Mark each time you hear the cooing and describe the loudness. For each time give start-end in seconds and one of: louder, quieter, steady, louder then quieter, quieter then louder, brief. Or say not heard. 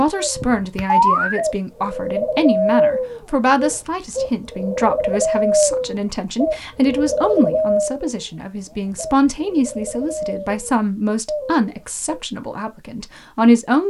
0.1-12.2 quieter.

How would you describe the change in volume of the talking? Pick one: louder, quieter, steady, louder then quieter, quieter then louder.
steady.